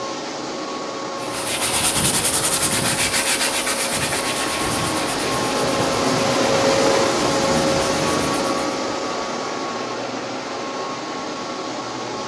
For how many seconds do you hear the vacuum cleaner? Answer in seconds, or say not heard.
12 s.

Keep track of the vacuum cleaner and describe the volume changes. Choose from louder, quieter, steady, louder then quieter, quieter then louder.
louder then quieter.